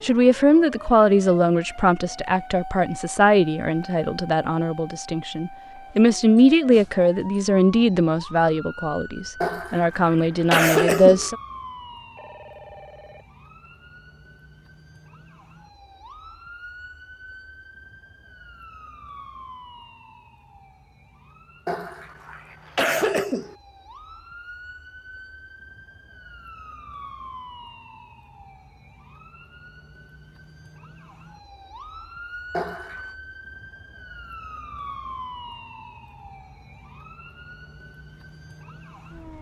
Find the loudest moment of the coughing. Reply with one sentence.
The loudest moment of the coughing is at 11 seconds.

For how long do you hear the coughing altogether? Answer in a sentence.
The coughing can be heard for 4 seconds in total.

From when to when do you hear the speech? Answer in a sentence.
The speech can be heard from 0.0 to 11.3 s.